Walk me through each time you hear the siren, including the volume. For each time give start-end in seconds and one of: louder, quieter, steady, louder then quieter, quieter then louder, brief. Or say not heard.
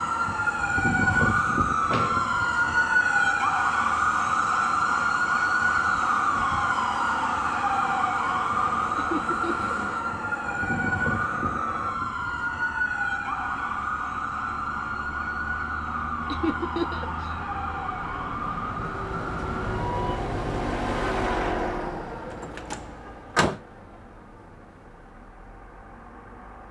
0.0-20.2 quieter.